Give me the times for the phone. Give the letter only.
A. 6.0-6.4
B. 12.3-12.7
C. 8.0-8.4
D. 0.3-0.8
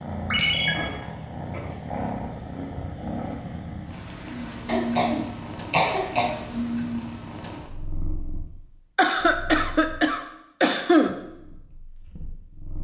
D.